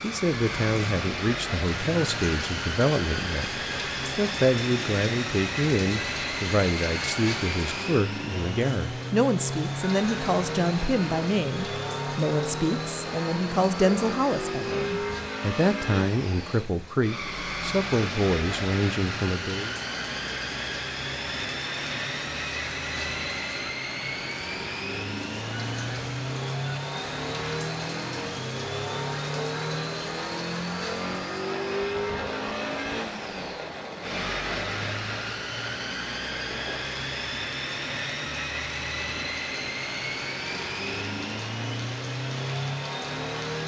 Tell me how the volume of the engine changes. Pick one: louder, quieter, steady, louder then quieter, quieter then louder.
steady.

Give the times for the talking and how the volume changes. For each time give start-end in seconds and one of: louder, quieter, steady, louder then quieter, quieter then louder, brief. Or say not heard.
0.0-19.8 steady.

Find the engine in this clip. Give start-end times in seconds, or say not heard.
0.0-43.6.